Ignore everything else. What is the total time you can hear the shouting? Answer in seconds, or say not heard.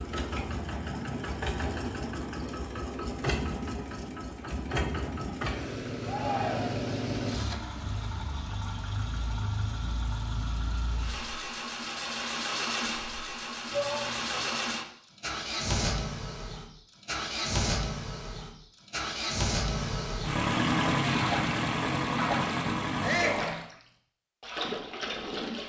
2 s.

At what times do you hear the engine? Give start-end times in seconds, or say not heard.
0.0-23.6.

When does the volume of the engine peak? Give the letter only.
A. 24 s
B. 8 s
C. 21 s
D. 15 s
C.